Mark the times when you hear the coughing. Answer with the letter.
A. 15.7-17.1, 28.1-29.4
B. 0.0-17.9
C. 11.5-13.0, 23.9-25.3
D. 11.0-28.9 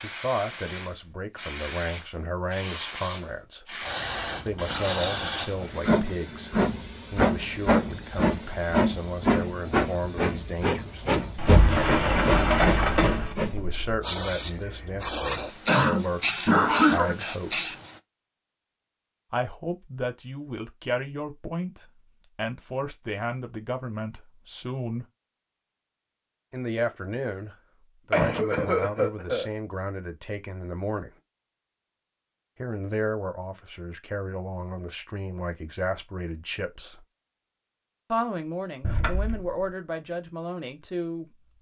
A.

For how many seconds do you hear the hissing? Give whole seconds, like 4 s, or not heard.
18 s.